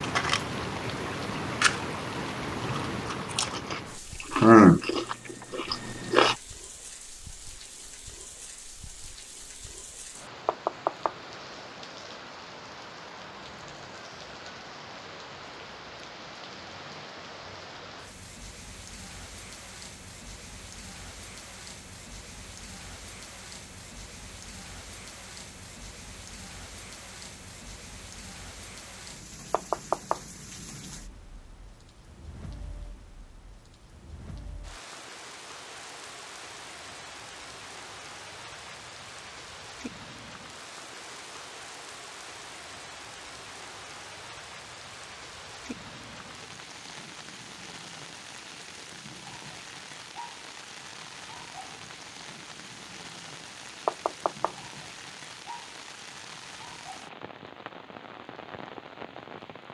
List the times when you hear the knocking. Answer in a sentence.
You can hear the knocking from 10.4 to 11.2 s, from 29.5 to 30.2 s and from 53.9 to 54.5 s.